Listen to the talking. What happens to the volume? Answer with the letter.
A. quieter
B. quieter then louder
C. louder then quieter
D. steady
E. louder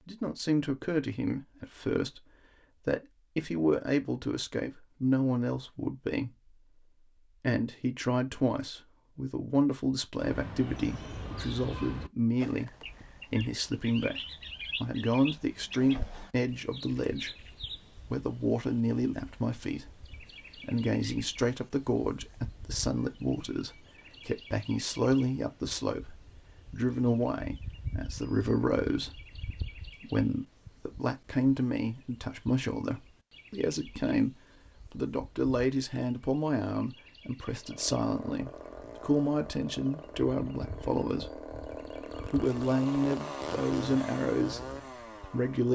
D.